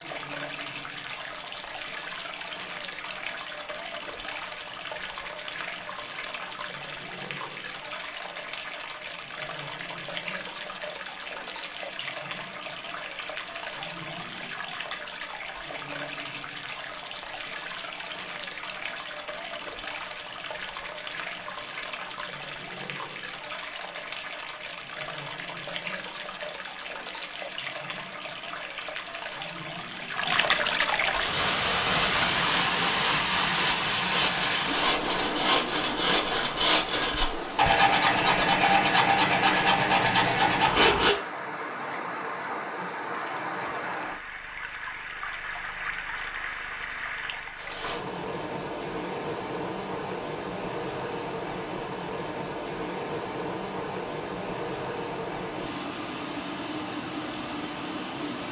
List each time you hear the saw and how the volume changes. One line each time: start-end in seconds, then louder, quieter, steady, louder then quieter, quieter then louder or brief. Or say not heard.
31.1-41.1 louder.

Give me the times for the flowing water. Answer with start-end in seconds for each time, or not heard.
0.0-58.4.